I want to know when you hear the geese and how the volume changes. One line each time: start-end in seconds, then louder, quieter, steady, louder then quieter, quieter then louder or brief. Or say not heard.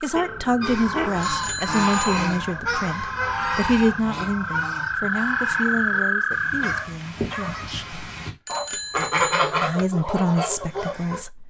0.6-11.2 quieter then louder.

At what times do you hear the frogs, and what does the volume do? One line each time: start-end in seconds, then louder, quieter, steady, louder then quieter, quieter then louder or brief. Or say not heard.
0.0-6.8 louder.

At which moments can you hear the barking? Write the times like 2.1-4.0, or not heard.
0.1-1.2, 6.6-7.7.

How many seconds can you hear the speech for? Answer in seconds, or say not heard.
10 s.